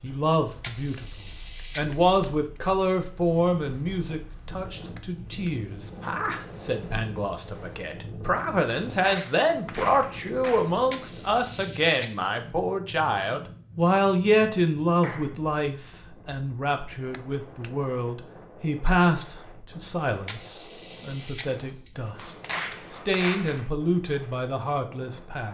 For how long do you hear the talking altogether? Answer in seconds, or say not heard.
25 s.